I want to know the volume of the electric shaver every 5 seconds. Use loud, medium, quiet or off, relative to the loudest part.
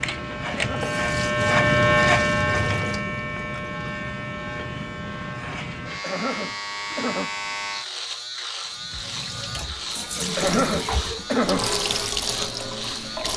loud, medium, medium.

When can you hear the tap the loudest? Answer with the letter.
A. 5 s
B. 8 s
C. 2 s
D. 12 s
D.